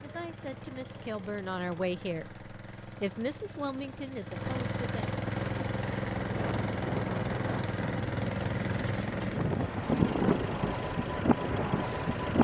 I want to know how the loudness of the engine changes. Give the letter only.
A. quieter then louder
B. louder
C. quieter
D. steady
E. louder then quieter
E.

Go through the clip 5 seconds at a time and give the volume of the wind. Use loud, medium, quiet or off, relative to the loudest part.
off, medium, loud.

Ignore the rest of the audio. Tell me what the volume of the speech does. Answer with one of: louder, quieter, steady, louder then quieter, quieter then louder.
louder then quieter.